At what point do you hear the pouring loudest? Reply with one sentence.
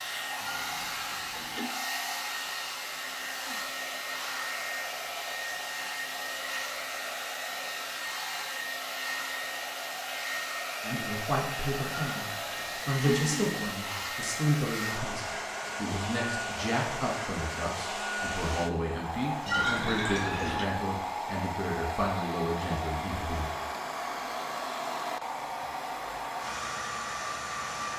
The loudest moment of the pouring is at 20 seconds.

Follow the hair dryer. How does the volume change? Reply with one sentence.
The loudness of the hair dryer stays about the same.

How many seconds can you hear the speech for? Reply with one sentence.
You can hear the speech for 13 seconds altogether.